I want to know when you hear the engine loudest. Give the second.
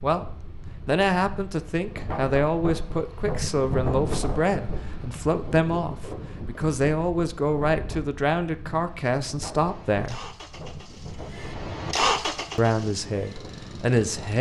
12 s.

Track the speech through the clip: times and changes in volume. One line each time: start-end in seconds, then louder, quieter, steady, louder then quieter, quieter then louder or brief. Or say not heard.
0.0-10.2 steady
12.6-14.3 brief.